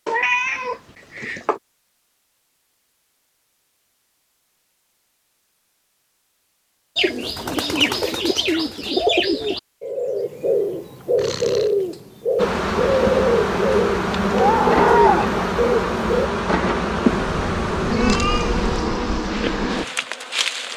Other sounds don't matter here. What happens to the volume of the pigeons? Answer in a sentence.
The volume of the pigeons stays about the same.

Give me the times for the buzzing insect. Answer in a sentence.
You can hear the buzzing insect from 12.3 to 20.7 s.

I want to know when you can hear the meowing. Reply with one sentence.
You can hear the meowing from 0.1 to 1.6 s, from 11.2 to 11.8 s and from 17.1 to 18.9 s.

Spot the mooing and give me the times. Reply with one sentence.
The mooing can be heard from 14.2 to 15.4 s.